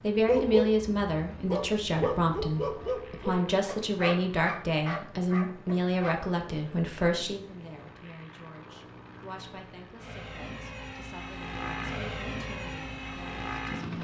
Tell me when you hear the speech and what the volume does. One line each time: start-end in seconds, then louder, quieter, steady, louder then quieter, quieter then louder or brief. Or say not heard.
0.0-13.9 quieter.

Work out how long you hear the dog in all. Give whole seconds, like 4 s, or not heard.
6 s.